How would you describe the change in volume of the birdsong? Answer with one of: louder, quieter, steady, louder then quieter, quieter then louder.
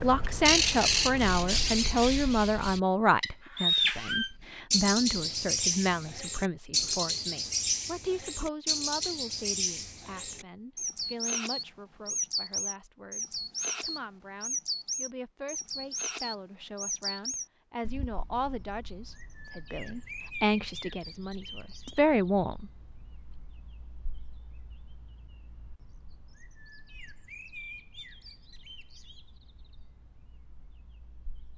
quieter.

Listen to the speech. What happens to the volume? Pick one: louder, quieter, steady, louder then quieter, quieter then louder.
quieter then louder.